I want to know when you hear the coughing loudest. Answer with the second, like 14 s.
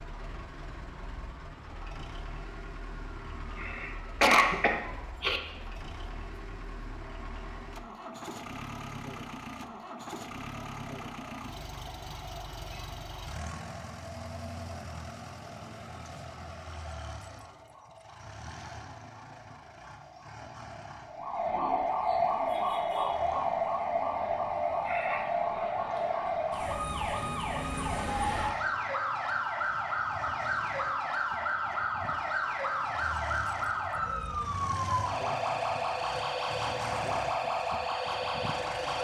4 s.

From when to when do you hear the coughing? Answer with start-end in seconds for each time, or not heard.
3.5-5.4, 24.9-25.3.